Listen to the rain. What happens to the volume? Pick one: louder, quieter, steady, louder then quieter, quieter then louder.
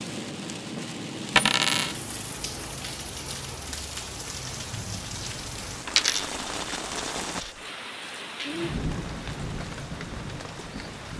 steady.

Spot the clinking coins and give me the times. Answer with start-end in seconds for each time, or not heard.
1.4-1.9, 5.8-7.5.